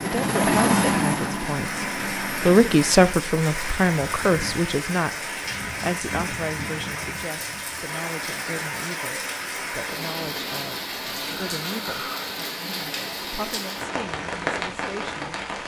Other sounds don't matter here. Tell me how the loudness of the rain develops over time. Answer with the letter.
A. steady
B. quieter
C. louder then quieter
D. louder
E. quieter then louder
A.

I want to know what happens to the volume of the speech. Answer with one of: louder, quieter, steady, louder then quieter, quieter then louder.
quieter.